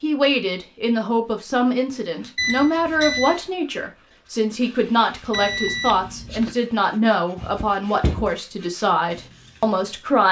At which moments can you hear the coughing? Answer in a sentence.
You can hear the coughing from 7.3 to 8.3 s.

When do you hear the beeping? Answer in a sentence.
The beeping can be heard from 2.4 to 3.4 s and from 5.3 to 6.5 s.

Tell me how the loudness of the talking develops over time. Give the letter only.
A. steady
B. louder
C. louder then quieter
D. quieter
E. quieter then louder
A.